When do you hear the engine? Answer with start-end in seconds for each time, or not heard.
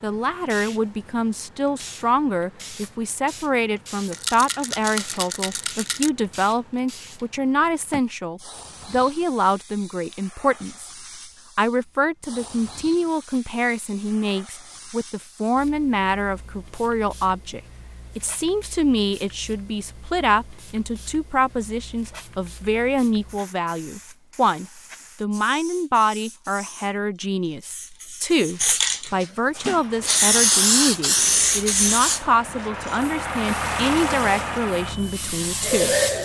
29.5-36.1.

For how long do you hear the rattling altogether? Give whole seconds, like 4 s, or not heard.
2 s.